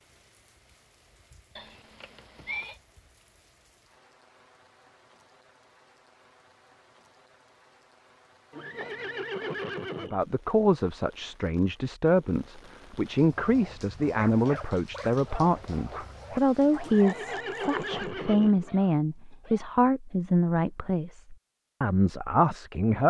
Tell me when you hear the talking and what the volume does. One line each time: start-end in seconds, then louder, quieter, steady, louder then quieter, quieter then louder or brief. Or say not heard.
10.0-23.0 steady.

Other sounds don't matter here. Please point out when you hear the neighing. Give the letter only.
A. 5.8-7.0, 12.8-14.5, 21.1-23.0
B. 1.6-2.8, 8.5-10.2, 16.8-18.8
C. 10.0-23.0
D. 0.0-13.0
B.